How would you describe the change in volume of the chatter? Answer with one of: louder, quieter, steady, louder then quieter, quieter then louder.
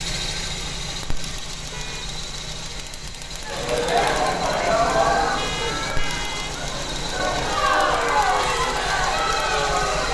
quieter then louder.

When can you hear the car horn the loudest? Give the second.
6 s.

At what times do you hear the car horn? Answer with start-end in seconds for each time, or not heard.
1.7-2.1, 5.3-6.7.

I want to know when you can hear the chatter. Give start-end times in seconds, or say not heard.
3.5-10.0.